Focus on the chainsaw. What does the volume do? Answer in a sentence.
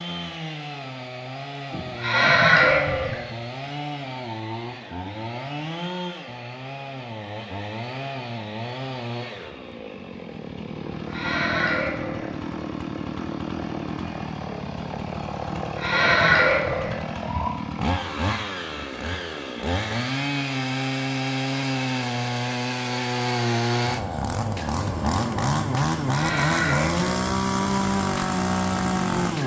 The loudness of the chainsaw goes up.